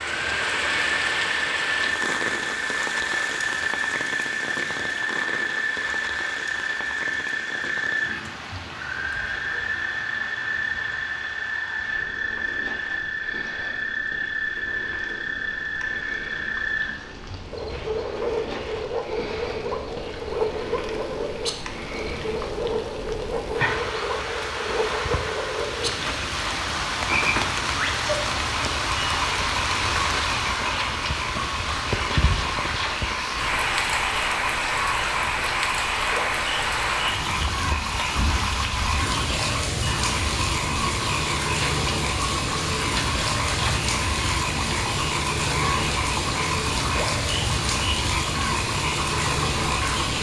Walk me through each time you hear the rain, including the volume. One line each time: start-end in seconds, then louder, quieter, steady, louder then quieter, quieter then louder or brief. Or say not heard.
0.0-50.1 quieter then louder.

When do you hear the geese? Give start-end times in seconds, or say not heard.
not heard.